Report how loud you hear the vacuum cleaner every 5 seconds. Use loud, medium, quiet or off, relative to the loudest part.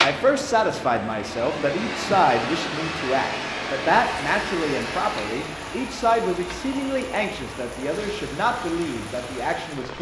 loud, medium.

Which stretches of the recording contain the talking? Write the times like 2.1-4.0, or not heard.
0.0-9.9.